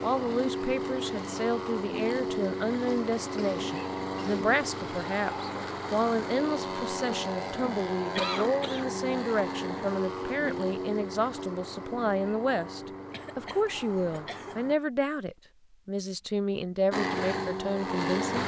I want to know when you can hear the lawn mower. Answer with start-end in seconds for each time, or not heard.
0.0-14.8, 16.9-18.4.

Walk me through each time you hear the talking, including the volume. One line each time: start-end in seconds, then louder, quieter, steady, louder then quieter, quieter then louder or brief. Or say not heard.
0.0-18.4 steady.